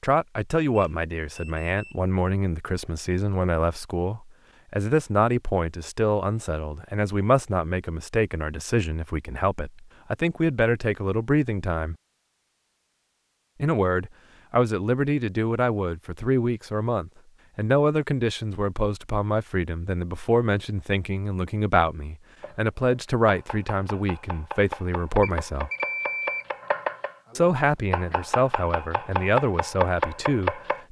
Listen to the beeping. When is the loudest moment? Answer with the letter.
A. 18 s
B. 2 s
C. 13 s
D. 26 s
D.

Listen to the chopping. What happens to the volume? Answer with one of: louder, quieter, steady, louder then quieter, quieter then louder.
louder.